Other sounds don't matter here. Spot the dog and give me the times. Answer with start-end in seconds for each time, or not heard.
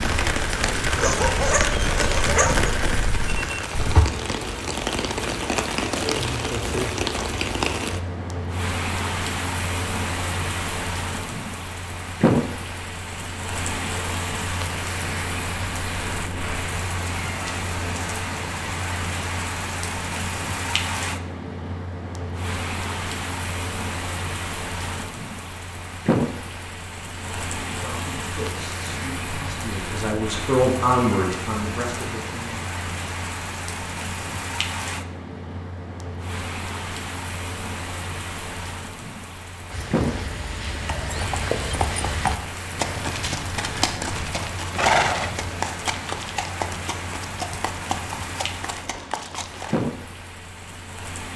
1.0-2.7.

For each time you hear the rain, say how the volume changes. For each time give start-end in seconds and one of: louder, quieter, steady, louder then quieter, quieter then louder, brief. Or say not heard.
0.0-51.3 quieter.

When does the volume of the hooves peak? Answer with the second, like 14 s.
45 s.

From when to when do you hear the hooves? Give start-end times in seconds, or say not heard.
0.0-4.0, 39.7-49.9.